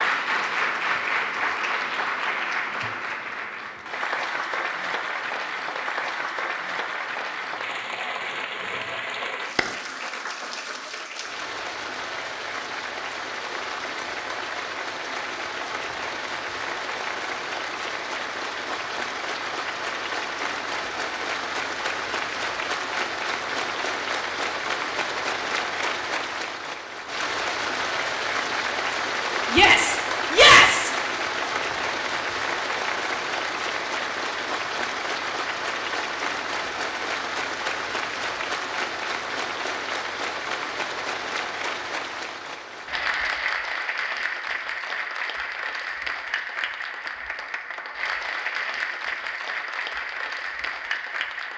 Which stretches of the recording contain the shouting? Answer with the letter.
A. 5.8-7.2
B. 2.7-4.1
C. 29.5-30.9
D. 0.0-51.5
C.